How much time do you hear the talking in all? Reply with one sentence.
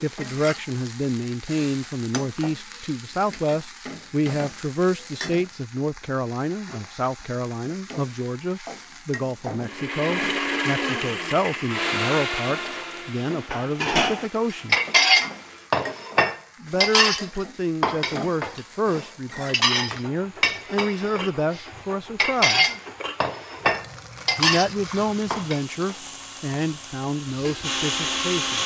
You can hear the talking for 25 seconds altogether.